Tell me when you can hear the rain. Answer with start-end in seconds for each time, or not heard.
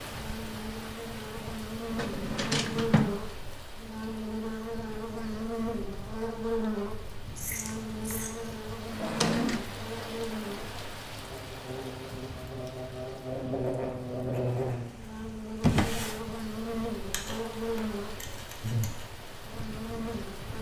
0.0-20.5.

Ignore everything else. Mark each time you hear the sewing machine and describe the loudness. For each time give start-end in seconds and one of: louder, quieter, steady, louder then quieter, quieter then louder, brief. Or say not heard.
not heard.